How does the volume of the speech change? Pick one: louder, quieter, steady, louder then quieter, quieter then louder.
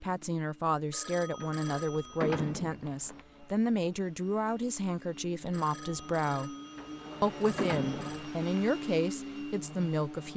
steady.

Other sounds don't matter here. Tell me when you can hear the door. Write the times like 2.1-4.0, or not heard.
1.4-3.2, 6.8-8.4.